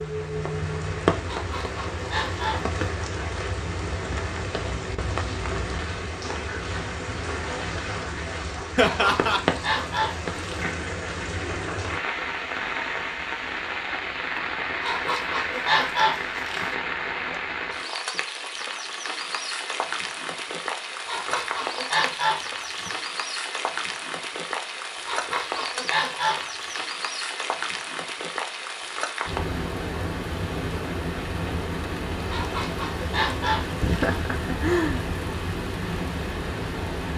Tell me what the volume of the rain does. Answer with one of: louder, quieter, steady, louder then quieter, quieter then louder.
steady.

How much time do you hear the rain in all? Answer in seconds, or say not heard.
37 s.